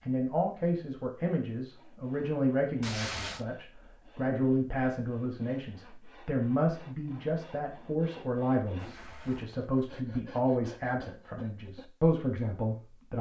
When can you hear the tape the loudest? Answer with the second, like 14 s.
3 s.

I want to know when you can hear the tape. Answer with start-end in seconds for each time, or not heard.
2.8-3.5, 8.8-9.8.